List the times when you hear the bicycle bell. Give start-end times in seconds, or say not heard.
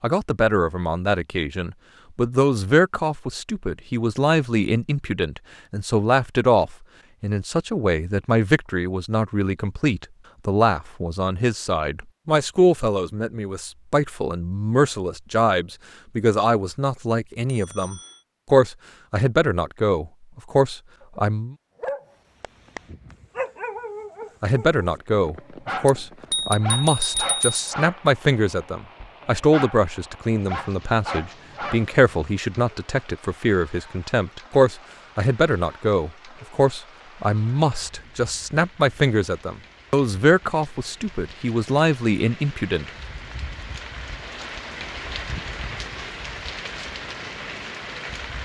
17.4-18.2, 25.9-27.6.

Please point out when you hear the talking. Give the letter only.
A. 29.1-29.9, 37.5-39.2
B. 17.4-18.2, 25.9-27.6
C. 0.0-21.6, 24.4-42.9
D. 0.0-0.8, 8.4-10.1
C.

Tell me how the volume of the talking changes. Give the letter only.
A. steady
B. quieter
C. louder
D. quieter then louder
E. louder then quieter
A.